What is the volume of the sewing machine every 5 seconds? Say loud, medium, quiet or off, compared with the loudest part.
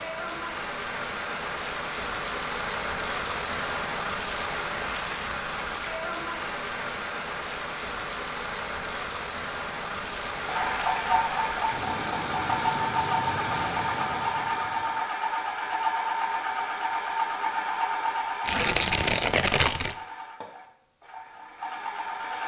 off, off, loud, loud, medium.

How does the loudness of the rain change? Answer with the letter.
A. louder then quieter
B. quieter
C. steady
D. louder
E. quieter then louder
C.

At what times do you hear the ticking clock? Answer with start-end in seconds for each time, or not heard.
not heard.